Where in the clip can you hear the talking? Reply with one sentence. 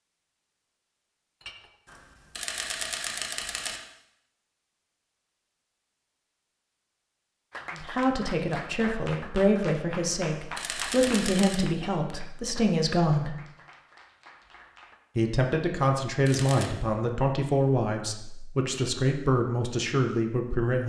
You can hear the talking from 7.8 to 13.3 s and from 15.2 to 20.8 s.